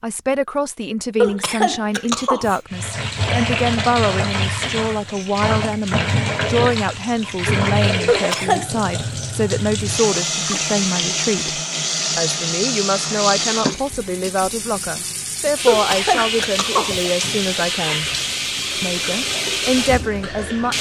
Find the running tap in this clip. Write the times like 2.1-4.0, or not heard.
2.7-20.7.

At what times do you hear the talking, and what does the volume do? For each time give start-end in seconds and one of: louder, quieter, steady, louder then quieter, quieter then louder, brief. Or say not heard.
0.0-18.1 steady
18.8-20.7 brief.